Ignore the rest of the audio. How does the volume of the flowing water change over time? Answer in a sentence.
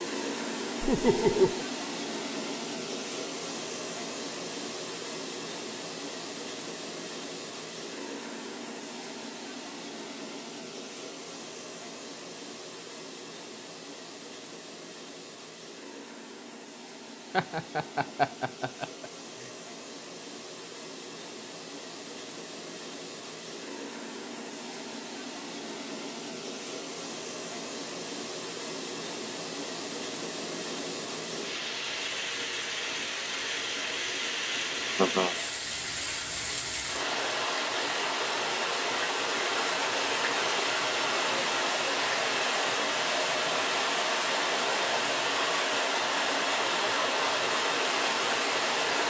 The loudness of the flowing water goes down, then up.